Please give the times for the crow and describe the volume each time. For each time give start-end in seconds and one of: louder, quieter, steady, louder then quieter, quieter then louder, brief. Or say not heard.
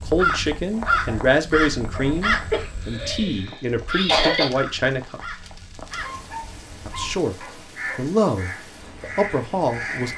0.0-10.1 quieter then louder.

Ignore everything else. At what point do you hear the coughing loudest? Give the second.
4 s.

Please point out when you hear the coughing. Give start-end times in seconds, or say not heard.
2.5-4.5.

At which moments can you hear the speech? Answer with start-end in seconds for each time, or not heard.
0.0-5.2, 6.8-10.1.